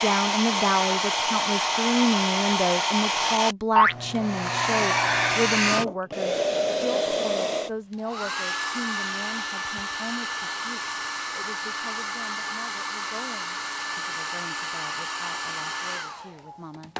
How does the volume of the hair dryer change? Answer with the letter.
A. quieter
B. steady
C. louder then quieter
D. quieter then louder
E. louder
A.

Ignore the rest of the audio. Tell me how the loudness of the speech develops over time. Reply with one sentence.
The volume of the speech goes down.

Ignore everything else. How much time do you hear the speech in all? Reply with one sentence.
You can hear the speech for 17 seconds altogether.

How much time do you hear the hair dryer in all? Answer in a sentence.
You can hear the hair dryer for 17 seconds altogether.